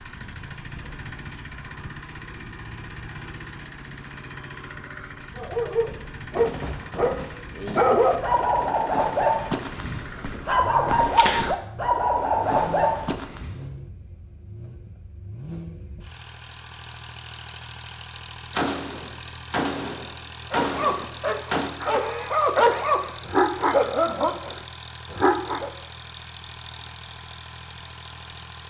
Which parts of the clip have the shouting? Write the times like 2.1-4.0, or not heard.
not heard.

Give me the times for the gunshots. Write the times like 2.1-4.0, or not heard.
6.3-8.0, 18.5-21.7.